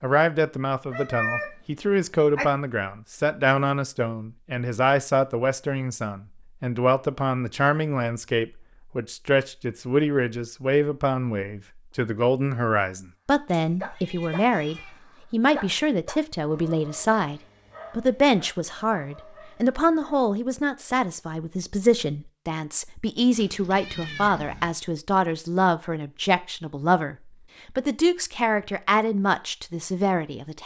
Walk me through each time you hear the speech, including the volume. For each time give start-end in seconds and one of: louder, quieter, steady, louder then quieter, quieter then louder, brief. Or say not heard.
0.0-27.1 steady
27.8-30.6 brief.